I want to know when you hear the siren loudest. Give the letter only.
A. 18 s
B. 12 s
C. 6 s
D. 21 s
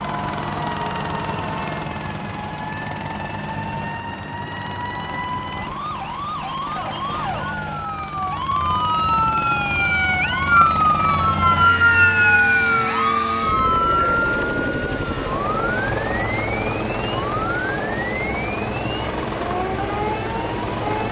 B.